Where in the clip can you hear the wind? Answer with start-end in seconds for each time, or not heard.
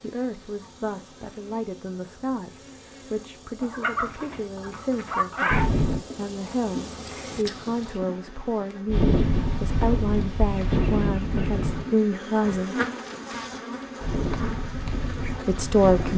5.5-16.1.